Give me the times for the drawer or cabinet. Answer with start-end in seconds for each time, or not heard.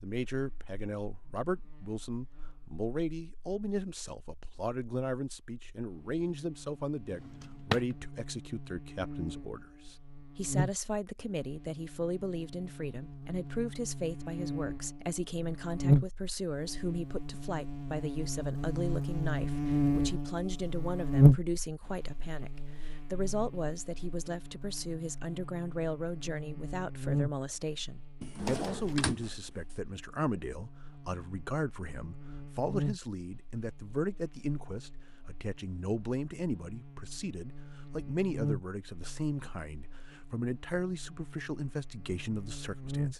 7.0-8.0, 28.2-29.8.